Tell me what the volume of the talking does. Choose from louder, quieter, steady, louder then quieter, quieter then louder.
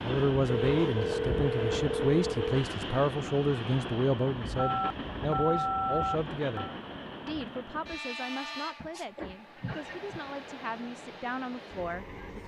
quieter.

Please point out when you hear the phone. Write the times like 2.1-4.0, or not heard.
0.6-2.6, 4.5-6.8, 8.8-10.2.